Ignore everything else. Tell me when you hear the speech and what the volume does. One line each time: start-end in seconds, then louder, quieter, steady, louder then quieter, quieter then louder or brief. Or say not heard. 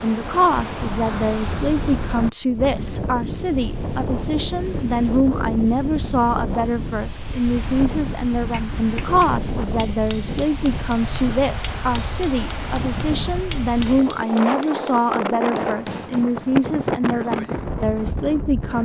0.0-18.8 steady.